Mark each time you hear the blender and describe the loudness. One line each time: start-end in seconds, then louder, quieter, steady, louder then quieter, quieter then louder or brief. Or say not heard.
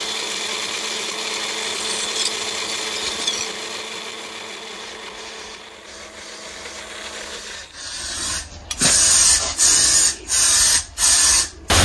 0.0-7.8 quieter.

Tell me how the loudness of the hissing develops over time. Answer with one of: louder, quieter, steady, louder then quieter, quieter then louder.
louder.